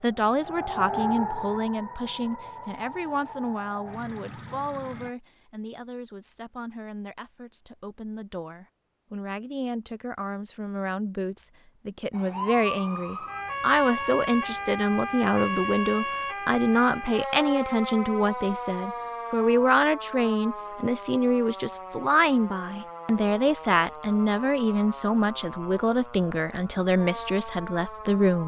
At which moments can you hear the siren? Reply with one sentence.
You can hear the siren from 0.0 to 5.2 s and from 12.1 to 28.4 s.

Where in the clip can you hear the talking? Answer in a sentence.
The talking can be heard from 0.0 to 28.4 s.